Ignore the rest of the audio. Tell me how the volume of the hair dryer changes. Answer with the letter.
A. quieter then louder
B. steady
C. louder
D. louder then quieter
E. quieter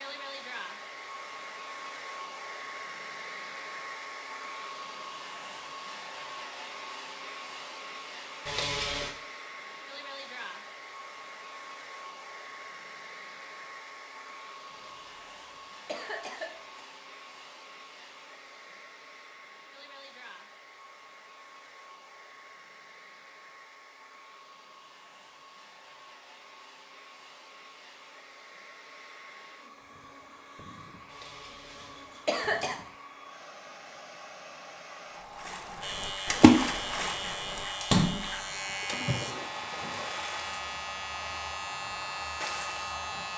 A.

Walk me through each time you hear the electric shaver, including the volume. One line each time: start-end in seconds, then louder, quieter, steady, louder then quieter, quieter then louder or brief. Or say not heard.
35.8-43.3 steady.